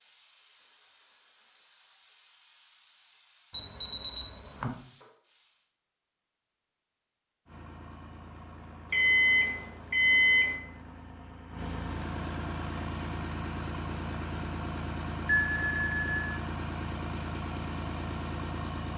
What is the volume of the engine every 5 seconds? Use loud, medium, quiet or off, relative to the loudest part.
off, quiet, loud, loud.